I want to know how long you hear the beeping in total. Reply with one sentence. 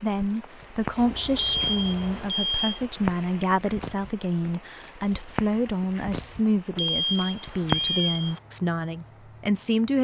The beeping can be heard for 3 seconds in total.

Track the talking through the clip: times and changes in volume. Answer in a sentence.
The talking can be heard from 0.0 to 9.9 s, at a steady volume.